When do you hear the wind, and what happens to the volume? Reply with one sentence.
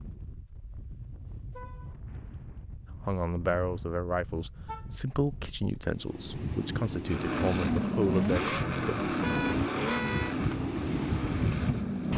The wind can be heard from 0.0 to 12.1 s, getting louder.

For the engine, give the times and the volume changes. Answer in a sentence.
The engine can be heard from 7.0 to 12.1 s, getting quieter.